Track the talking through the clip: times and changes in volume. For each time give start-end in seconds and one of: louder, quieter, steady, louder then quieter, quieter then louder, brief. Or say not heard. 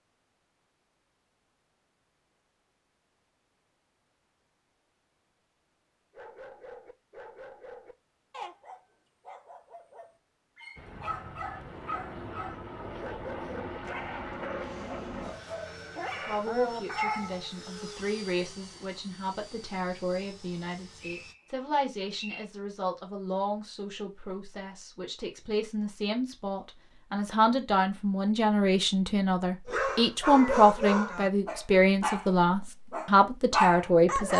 16.2-34.3 louder.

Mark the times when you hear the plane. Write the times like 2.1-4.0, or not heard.
10.8-21.4.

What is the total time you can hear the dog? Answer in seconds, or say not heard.
16 s.